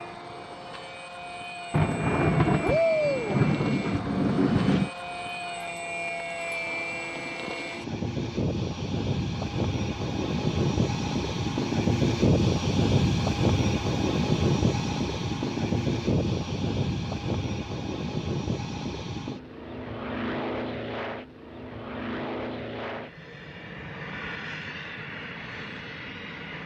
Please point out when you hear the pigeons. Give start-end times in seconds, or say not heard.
not heard.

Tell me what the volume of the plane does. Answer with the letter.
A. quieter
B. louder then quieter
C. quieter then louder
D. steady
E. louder
B.